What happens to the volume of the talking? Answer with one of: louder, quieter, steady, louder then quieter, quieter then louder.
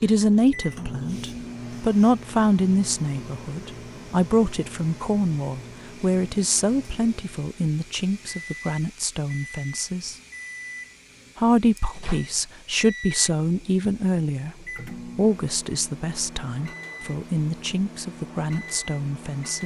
quieter.